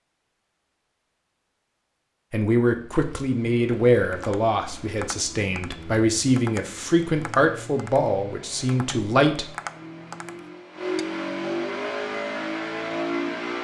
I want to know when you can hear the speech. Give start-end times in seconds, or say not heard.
2.3-9.4.